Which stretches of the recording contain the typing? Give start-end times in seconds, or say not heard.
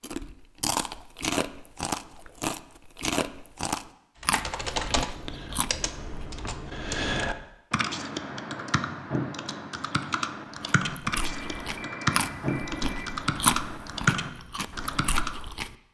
4.2-15.3.